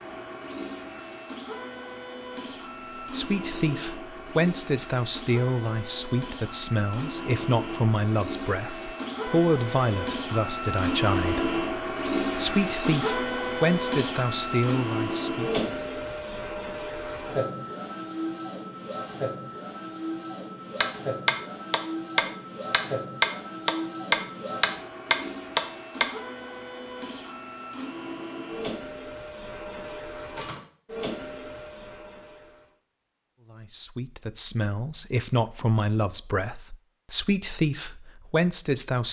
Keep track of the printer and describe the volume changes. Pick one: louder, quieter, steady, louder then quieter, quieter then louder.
louder then quieter.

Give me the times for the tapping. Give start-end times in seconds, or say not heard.
20.8-26.1.